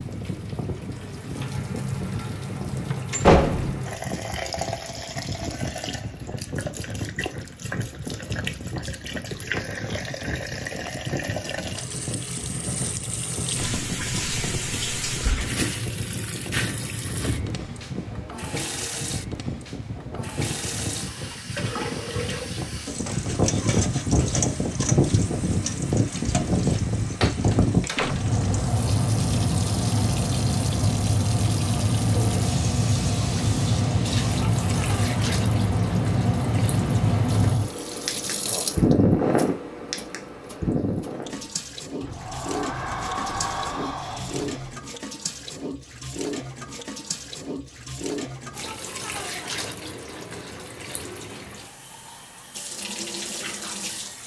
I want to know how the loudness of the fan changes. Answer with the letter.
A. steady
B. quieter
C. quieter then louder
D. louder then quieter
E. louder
E.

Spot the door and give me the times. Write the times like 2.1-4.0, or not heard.
3.1-3.8, 27.2-28.4, 42.0-44.8.